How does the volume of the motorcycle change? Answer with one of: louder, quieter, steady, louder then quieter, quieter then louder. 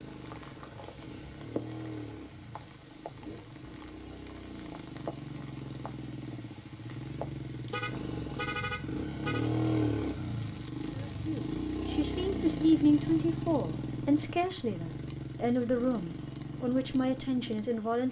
louder then quieter.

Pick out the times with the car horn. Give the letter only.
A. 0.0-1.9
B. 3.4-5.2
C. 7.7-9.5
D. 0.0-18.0
C.